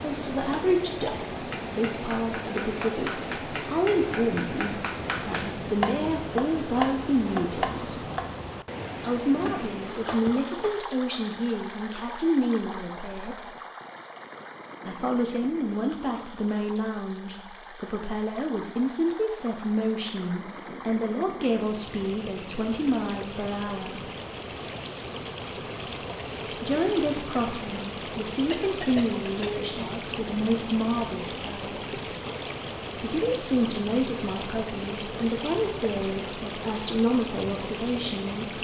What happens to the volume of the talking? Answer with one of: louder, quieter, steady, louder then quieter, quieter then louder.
steady.